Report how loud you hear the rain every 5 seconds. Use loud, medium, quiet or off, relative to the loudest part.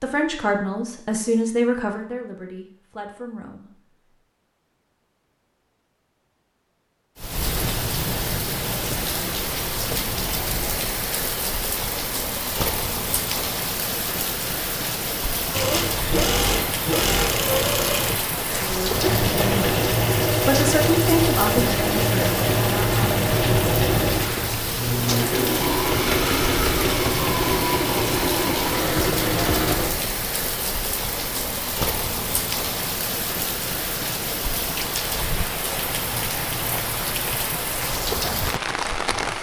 off, loud, loud, loud, loud, loud, loud, loud.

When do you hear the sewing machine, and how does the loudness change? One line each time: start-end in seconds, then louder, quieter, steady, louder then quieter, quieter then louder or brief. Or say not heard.
15.5-29.9 steady.